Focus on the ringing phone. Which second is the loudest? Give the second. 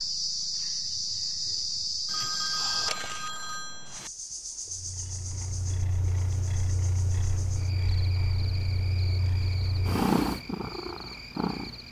3 s.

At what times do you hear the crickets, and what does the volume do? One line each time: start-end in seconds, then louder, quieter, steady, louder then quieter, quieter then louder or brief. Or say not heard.
0.0-11.8 quieter.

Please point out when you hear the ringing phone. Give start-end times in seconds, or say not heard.
2.0-4.1.